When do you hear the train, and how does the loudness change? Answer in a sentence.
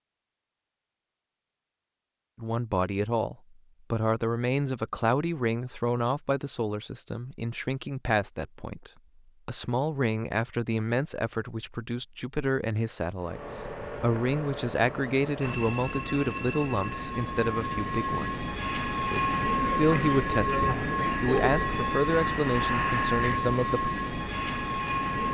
The train can be heard from 13.2 to 25.3 s, getting louder.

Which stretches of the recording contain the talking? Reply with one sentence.
You can hear the talking from 2.4 to 18.4 s and from 19.1 to 23.9 s.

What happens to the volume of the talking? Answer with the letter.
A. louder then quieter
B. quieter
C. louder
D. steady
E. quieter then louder
D.